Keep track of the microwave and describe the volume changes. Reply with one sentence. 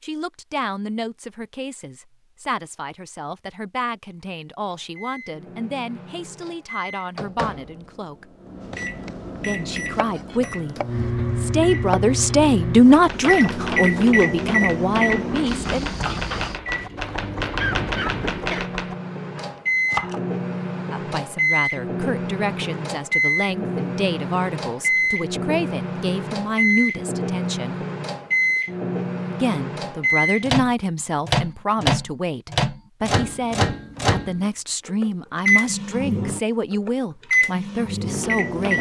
The loudness of the microwave goes up.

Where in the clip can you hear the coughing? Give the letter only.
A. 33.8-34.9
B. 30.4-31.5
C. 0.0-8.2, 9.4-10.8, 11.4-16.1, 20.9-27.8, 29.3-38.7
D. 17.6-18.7
D.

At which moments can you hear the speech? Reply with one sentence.
The speech can be heard from 0.0 to 8.2 s, from 9.4 to 10.8 s, from 11.4 to 16.1 s, from 20.9 to 27.8 s and from 29.3 to 38.7 s.